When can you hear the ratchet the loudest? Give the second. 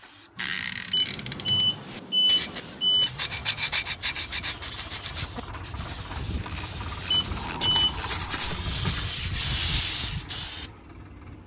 1 s.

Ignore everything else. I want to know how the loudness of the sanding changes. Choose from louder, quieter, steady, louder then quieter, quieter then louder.
quieter then louder.